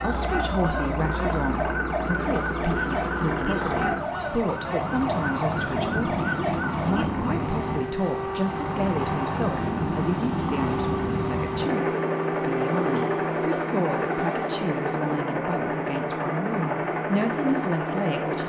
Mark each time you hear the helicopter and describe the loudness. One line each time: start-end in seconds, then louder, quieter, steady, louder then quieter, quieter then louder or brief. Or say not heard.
0.0-18.4 steady.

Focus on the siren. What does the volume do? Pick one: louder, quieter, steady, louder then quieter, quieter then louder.
steady.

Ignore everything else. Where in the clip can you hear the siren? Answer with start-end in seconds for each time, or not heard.
0.0-14.9.